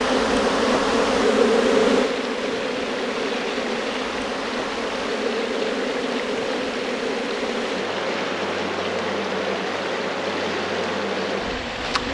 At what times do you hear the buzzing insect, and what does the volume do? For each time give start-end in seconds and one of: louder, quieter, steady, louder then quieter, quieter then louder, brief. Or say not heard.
0.0-12.0 quieter.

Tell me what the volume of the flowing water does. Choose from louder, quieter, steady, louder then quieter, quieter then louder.
steady.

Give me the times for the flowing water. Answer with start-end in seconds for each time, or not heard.
0.0-12.0.